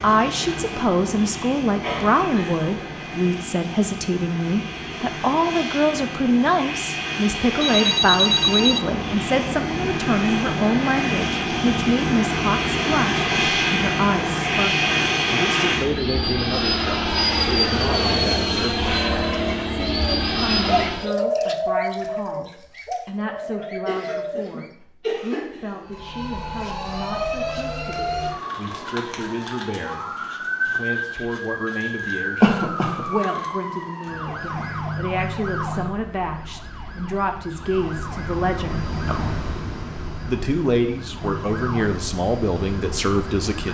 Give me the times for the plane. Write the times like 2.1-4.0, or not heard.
0.0-21.1, 37.5-43.6.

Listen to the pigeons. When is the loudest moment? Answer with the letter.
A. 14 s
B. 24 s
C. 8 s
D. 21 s
D.